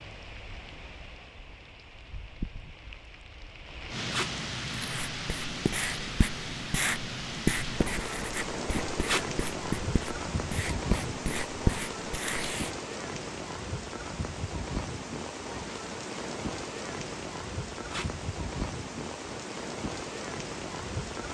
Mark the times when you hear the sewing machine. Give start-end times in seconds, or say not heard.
not heard.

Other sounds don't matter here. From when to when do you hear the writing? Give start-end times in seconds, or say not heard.
4.7-12.7.